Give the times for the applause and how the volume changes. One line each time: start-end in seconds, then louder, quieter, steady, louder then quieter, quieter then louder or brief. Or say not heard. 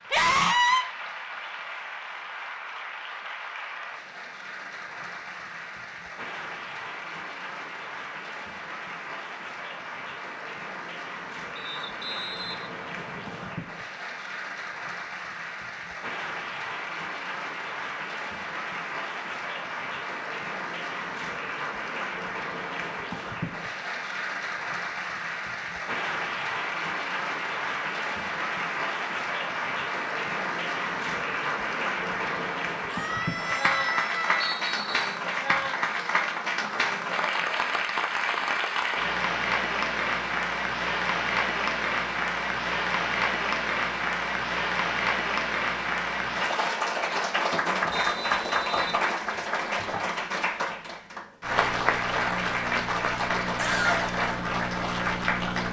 0.0-55.6 louder.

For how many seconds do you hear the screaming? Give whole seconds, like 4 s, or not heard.
3 s.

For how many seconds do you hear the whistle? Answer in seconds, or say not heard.
4 s.